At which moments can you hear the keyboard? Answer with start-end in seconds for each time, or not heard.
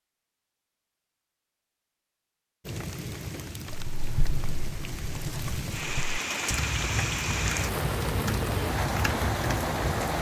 3.7-10.1.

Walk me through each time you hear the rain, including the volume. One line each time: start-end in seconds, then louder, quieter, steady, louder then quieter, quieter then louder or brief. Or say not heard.
2.6-10.1 louder.